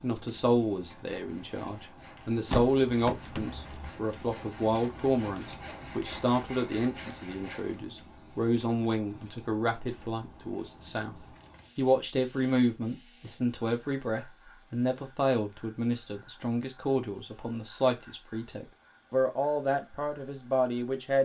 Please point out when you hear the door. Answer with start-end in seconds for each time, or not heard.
2.5-3.9.